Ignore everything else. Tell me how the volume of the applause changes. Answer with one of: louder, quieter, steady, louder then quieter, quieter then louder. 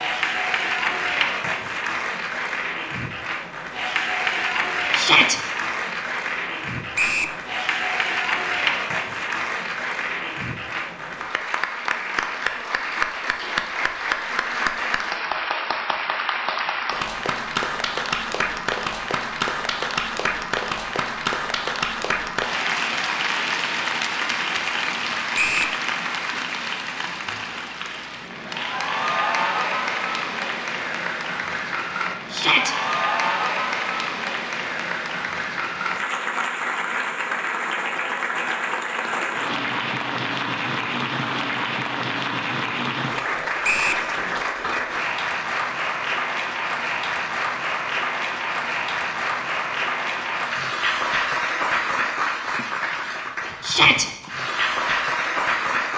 steady.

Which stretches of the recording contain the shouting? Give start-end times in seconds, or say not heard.
5.0-5.4, 32.3-32.8, 53.6-54.0.